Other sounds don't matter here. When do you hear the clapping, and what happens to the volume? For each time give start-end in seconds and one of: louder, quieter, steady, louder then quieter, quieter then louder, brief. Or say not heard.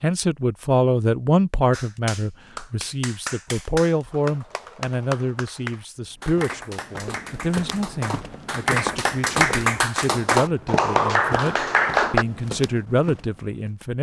1.7-12.2 louder.